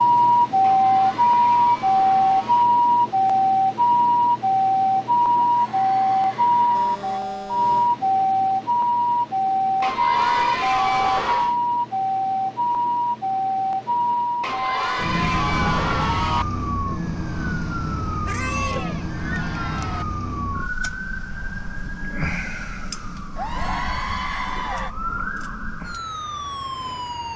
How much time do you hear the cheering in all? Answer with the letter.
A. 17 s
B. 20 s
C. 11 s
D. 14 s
C.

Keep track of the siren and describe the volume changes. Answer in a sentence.
The volume of the siren goes down.